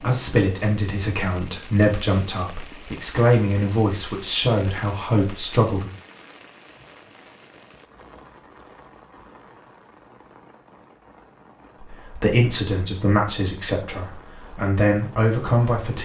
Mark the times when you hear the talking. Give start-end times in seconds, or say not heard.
0.0-5.9, 11.8-16.0.